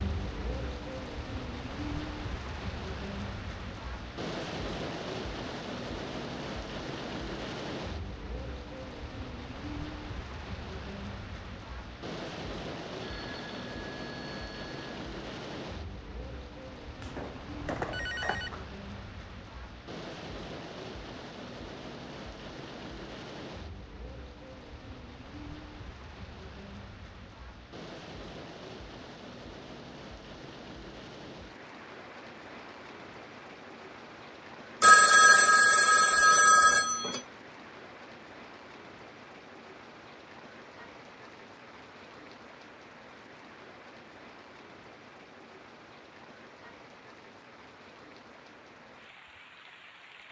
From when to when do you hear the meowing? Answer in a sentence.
You can't hear the meowing here.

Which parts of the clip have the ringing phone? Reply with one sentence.
The ringing phone can be heard from 13.0 to 14.8 s, from 17.0 to 18.6 s and from 34.8 to 37.2 s.